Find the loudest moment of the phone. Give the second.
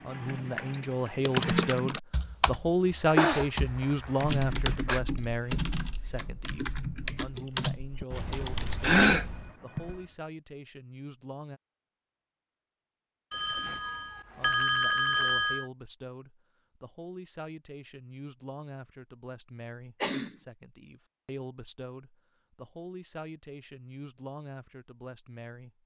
15 s.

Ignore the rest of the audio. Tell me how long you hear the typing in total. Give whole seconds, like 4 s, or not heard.
9 s.